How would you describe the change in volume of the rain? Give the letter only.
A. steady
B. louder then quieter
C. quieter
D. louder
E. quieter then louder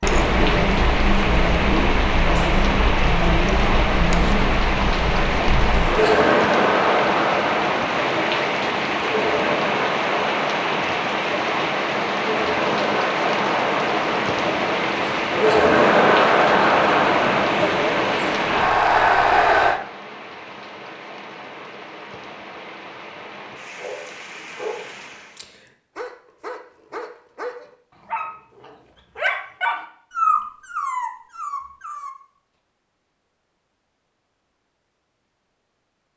C.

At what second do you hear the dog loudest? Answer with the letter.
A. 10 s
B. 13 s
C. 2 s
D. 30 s
D.